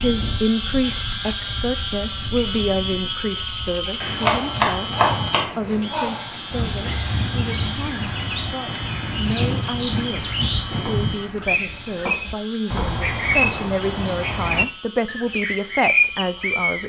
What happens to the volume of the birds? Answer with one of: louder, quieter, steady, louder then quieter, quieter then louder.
louder.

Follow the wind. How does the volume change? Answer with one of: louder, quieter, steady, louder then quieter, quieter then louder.
louder.